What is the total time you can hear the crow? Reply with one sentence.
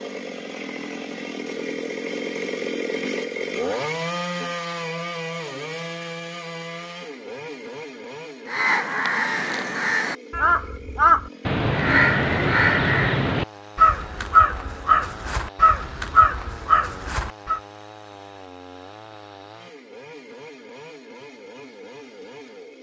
You can hear the crow for 9 seconds altogether.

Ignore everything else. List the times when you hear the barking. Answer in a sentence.
The barking can't be heard in this clip.